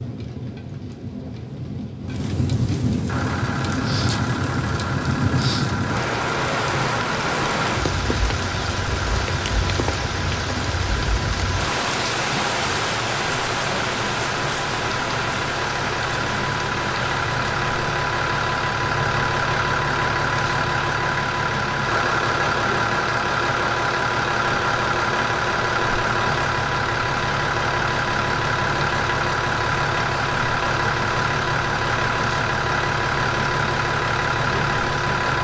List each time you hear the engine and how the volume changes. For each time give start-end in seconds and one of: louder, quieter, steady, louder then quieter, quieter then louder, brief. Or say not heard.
3.0-35.3 louder.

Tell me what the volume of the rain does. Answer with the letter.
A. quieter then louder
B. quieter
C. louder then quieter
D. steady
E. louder
B.